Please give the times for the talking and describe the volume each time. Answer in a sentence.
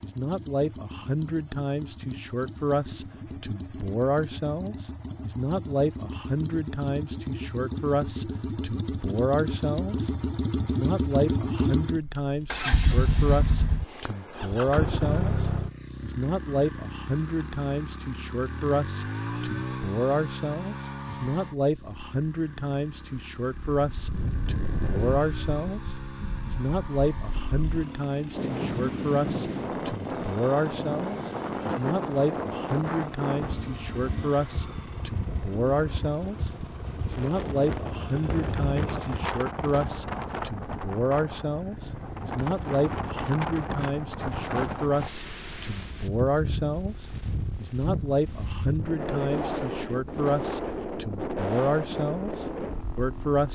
The talking can be heard from 0.0 to 53.5 s, at a steady volume.